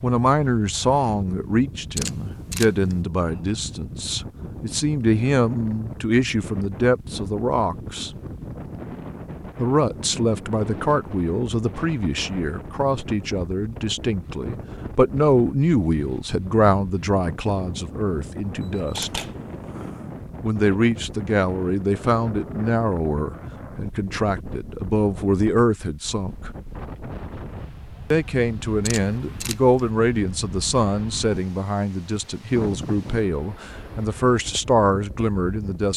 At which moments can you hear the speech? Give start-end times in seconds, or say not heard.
0.0-8.1, 9.6-19.2, 20.4-26.5, 28.1-35.9.